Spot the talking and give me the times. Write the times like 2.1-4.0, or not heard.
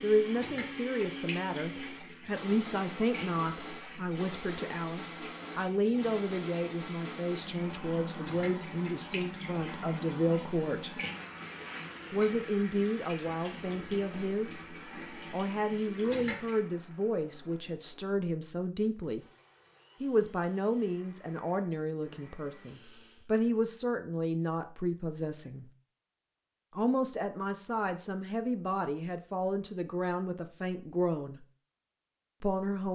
0.0-11.0, 12.1-19.2, 20.0-25.6, 26.8-31.4, 32.4-32.9.